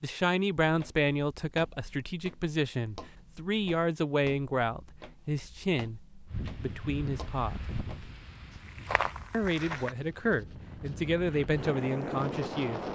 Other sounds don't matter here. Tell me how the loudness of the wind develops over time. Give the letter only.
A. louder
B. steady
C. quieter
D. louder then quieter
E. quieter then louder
E.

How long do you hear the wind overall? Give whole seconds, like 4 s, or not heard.
7 s.